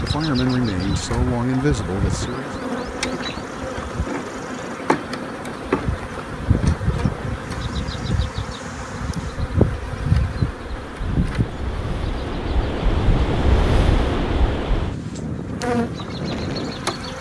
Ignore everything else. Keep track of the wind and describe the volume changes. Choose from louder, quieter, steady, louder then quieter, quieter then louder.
louder.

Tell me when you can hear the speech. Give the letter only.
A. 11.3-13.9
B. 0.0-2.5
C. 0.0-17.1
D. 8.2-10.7
B.